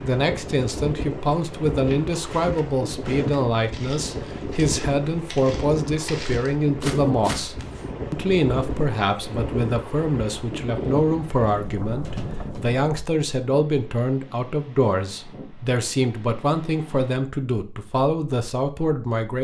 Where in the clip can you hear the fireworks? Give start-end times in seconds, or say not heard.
not heard.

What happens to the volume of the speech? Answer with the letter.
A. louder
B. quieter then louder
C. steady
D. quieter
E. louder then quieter
C.